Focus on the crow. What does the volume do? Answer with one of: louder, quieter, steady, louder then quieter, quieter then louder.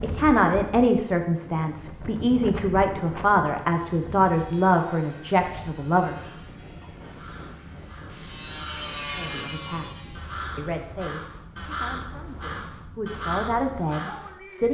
louder.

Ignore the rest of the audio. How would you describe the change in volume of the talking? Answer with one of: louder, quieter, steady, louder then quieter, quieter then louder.
quieter then louder.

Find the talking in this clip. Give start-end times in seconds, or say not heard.
0.0-6.2, 9.2-14.6.